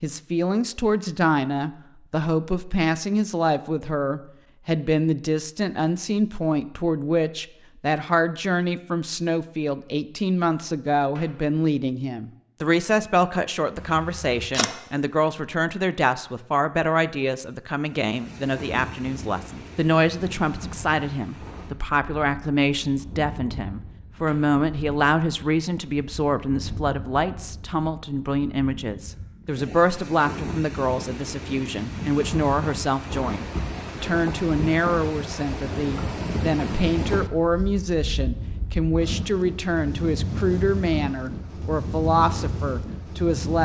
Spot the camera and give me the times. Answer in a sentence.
You can hear the camera from 13.8 to 14.7 s.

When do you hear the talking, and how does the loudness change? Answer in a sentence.
The talking can be heard from 0.0 to 43.6 s, at a steady volume.